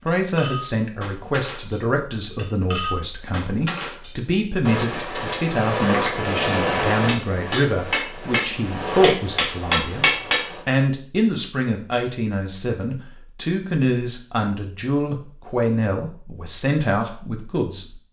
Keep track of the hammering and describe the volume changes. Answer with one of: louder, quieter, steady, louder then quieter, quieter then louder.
louder.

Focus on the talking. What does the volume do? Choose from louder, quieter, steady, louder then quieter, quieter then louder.
steady.